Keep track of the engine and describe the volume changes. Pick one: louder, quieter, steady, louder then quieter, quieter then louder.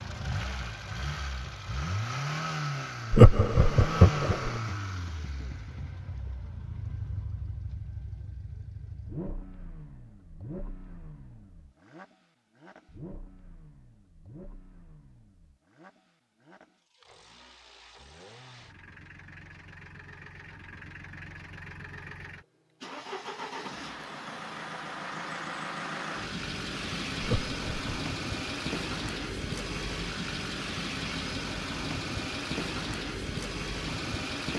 quieter then louder.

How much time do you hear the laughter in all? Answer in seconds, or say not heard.
2 s.